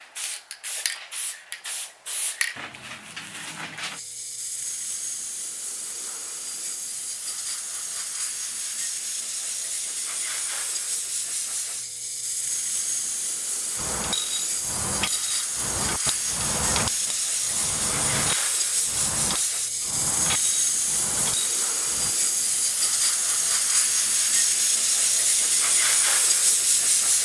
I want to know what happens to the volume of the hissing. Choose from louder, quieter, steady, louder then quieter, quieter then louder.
louder.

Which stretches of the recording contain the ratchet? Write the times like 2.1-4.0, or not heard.
13.8-22.1.